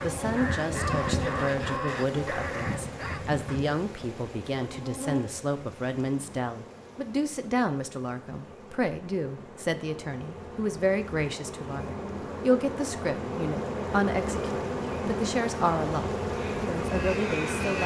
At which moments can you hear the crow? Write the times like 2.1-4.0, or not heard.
0.0-3.6, 16.3-17.8.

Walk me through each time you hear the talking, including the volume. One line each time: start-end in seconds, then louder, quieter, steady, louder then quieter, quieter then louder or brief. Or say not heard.
0.0-17.8 steady.